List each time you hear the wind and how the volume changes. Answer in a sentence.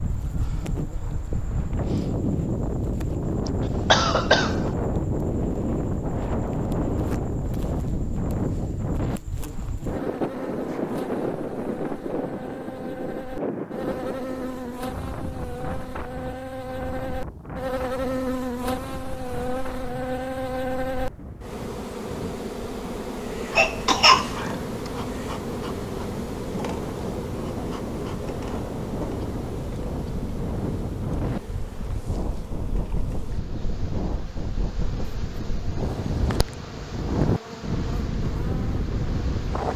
You can hear the wind from 0.0 to 39.7 s, getting quieter then louder.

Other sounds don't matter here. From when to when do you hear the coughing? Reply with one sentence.
You can hear the coughing from 3.5 to 4.7 s and from 23.6 to 24.9 s.